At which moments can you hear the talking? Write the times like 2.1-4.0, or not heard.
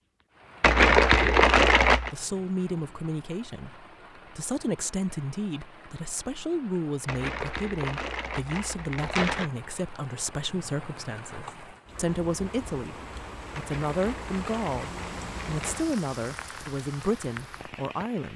2.1-18.3.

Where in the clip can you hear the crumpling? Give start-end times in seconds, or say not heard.
0.6-2.1, 7.0-9.4, 13.6-15.8.